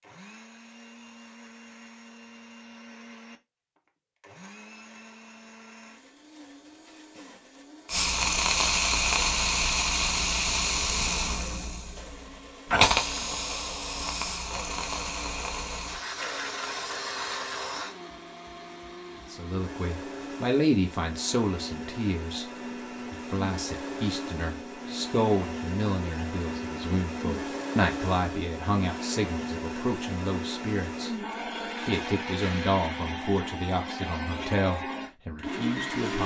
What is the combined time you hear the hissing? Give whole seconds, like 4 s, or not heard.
10 s.